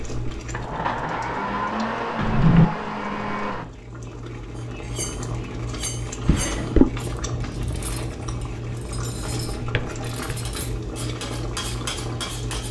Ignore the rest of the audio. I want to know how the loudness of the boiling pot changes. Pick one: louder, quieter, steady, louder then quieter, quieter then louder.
louder.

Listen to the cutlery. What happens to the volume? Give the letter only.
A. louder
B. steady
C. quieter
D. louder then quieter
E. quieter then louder
E.